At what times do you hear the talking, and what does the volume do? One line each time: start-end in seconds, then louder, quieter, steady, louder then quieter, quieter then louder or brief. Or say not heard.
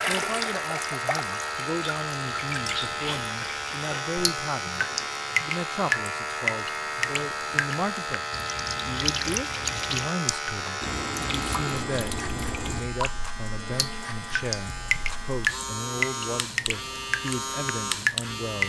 0.0-18.6 steady.